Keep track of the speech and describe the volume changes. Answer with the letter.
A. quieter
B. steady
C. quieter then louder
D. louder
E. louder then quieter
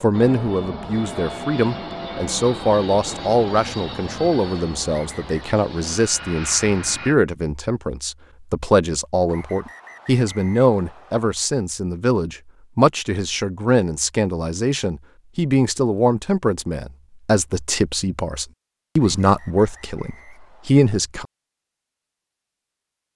B.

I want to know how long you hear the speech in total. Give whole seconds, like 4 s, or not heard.
21 s.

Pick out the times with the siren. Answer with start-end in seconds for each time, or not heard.
not heard.